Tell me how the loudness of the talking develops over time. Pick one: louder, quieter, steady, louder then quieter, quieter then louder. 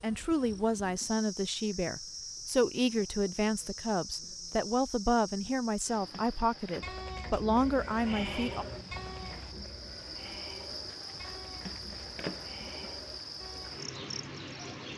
steady.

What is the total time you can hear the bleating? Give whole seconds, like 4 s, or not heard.
7 s.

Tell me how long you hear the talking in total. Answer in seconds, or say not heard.
9 s.